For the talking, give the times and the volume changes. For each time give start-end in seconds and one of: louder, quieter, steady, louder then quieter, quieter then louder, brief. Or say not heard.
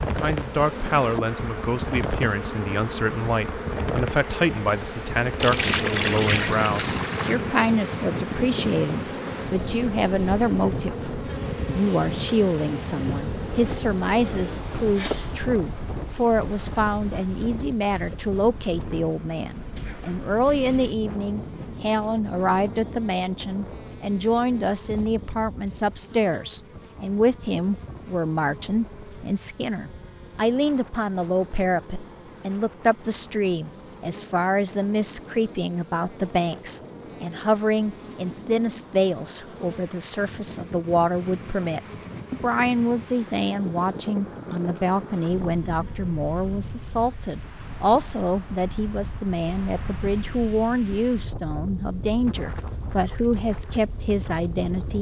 0.1-54.9 steady.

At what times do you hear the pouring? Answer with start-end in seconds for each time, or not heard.
5.4-7.3.